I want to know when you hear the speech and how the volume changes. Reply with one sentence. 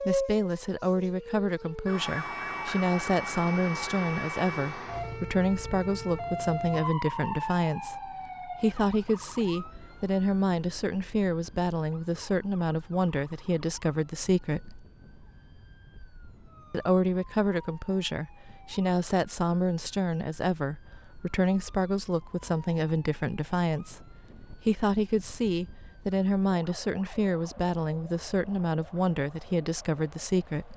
You can hear the speech from 0.1 to 14.8 s, at a steady volume; and from 16.7 to 30.7 s, at a steady volume.